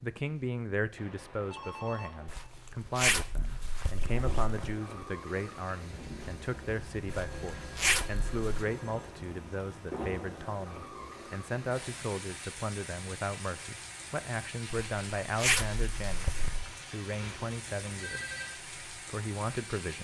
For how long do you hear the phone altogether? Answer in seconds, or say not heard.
5 s.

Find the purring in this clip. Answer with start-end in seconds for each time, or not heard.
not heard.